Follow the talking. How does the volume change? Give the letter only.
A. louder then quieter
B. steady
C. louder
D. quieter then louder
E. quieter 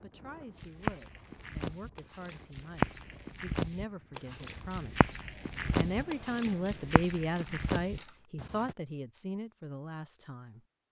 A.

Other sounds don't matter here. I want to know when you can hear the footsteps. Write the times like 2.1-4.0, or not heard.
0.6-8.8.